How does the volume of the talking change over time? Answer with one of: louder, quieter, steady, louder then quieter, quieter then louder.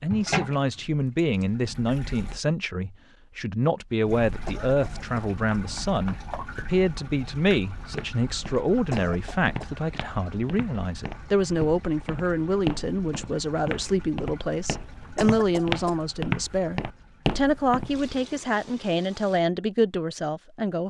steady.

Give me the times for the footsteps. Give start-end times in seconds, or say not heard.
7.8-18.1.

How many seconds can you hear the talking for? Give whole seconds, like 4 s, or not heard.
21 s.